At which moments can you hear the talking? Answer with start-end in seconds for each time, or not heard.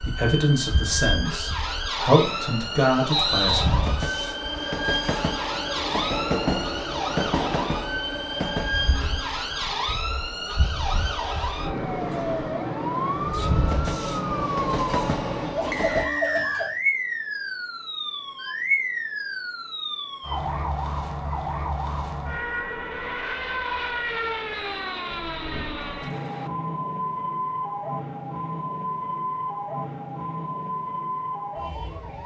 0.0-3.6.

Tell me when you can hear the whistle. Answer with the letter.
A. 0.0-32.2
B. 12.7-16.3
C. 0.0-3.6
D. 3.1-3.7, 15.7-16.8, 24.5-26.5
D.